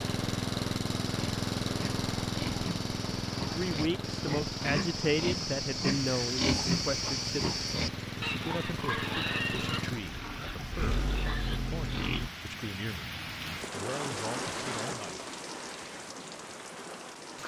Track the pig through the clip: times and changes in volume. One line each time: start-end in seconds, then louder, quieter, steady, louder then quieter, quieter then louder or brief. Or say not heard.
1.1-12.3 louder then quieter.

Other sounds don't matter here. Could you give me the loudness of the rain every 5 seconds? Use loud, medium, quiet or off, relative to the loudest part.
medium, medium, loud, loud.